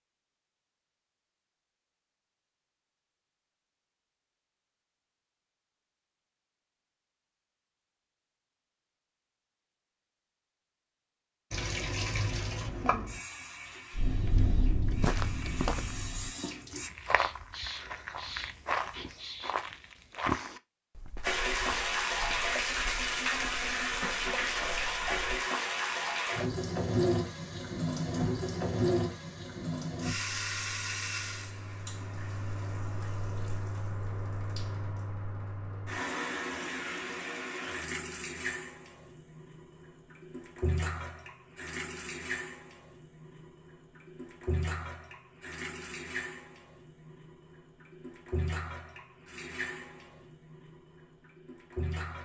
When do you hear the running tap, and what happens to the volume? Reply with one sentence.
You can hear the running tap from 11.5 to 16.9 s, getting quieter then louder; and from 21.2 to 52.2 s, getting quieter.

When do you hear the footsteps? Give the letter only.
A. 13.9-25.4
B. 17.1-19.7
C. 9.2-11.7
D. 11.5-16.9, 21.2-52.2
A.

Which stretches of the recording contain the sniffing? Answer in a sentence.
You can hear the sniffing from 17.1 to 19.7 s.